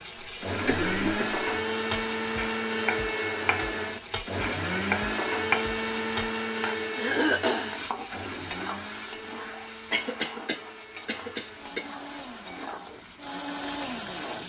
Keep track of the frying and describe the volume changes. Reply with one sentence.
The loudness of the frying goes down.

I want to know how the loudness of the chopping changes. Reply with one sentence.
The loudness of the chopping goes up, then down.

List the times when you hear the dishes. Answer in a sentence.
The dishes can't be heard in this clip.